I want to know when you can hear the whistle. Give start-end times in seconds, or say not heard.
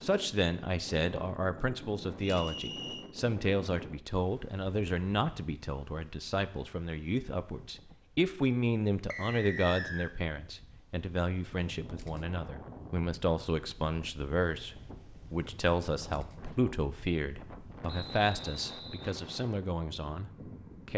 2.2-3.0, 9.1-10.1, 17.9-19.1.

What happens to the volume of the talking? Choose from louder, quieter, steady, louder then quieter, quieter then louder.
steady.